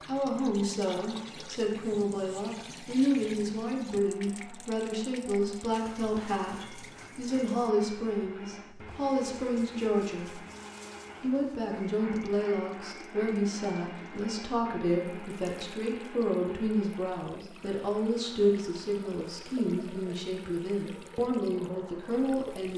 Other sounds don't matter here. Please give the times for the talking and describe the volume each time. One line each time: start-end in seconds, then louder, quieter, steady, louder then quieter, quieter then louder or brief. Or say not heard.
0.0-10.3 steady
11.2-22.7 steady.